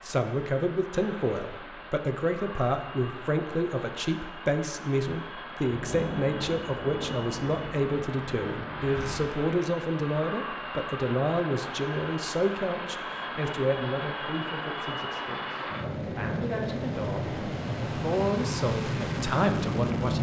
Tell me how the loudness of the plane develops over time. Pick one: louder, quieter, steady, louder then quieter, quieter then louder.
louder.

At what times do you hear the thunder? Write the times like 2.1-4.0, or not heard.
5.7-9.2.